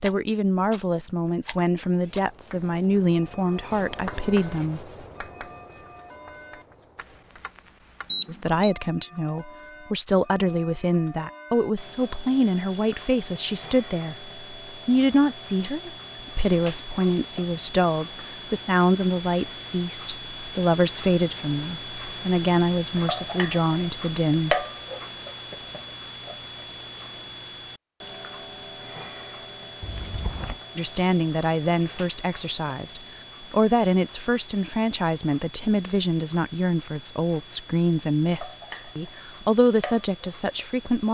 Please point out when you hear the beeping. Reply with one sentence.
You can hear the beeping from 8.1 to 8.7 s.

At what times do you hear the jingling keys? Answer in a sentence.
The jingling keys can be heard from 29.8 to 30.6 s.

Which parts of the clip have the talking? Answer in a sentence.
The talking can be heard from 0.0 to 4.9 s, from 8.2 to 24.6 s and from 30.8 to 41.1 s.